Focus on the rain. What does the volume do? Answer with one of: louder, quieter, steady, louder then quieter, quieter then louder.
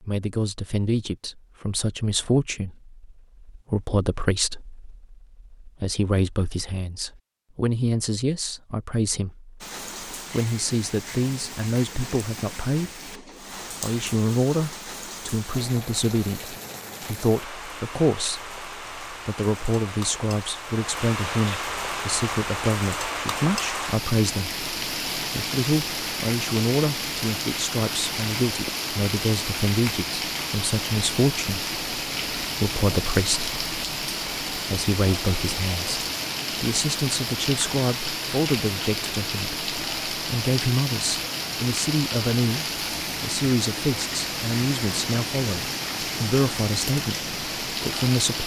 louder.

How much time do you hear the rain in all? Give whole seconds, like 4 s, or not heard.
39 s.